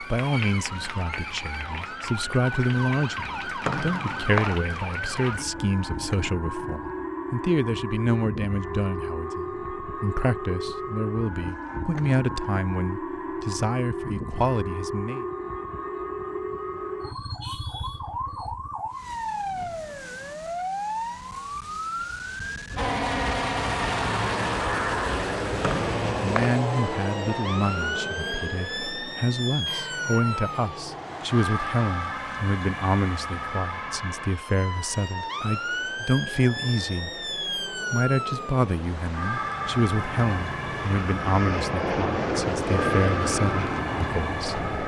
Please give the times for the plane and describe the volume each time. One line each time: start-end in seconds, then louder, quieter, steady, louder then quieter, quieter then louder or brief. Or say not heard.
22.8-44.8 quieter then louder.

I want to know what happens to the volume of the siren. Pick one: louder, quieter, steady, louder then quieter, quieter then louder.
steady.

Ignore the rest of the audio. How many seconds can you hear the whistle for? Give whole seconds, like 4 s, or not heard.
2 s.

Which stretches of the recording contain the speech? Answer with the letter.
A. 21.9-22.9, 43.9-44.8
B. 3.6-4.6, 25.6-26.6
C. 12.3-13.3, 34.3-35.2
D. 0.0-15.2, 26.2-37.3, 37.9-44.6
D.